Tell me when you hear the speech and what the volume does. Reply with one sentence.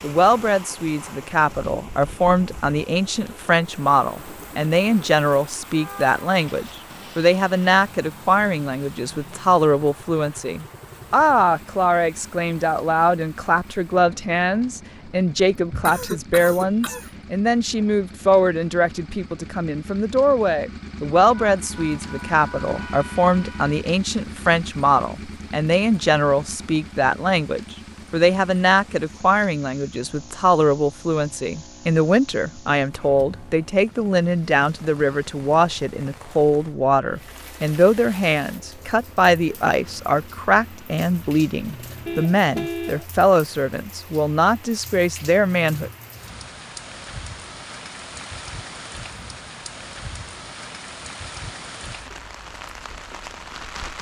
You can hear the speech from 0.0 to 45.9 s, at a steady volume.